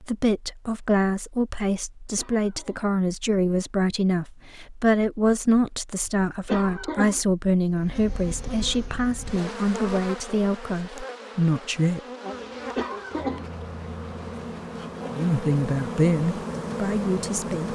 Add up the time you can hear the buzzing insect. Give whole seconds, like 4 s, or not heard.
10 s.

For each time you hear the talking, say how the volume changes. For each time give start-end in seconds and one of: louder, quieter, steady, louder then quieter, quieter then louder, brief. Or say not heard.
0.0-12.0 steady
15.1-17.6 brief.